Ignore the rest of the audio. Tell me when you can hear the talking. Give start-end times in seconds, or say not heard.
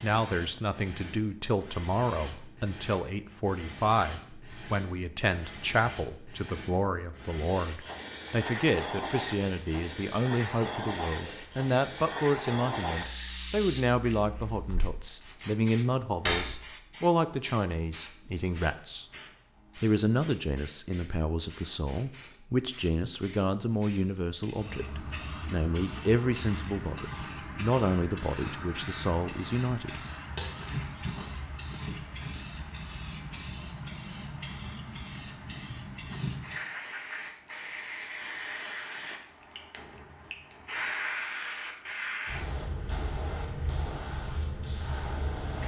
0.0-19.1, 19.8-30.0.